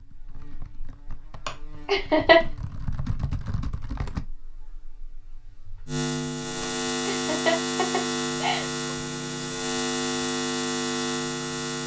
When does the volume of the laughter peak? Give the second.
2 s.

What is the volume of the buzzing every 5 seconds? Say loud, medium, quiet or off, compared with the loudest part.
quiet, loud, loud.